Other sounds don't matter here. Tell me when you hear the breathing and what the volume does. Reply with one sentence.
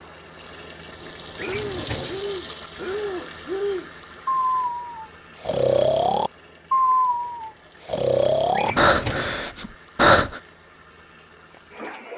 The breathing can be heard from 1.0 to 10.4 s, getting louder.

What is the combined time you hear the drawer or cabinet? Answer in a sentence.
The drawer or cabinet can be heard for 2 seconds in total.